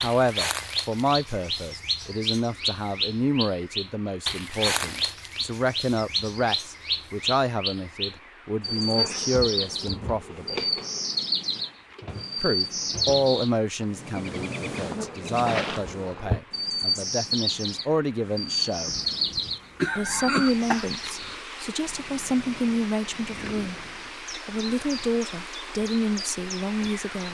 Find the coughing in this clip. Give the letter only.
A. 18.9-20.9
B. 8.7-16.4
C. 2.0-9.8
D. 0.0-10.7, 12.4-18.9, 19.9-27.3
A.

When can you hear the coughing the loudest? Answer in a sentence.
The volume of the coughing peaks at 20 seconds.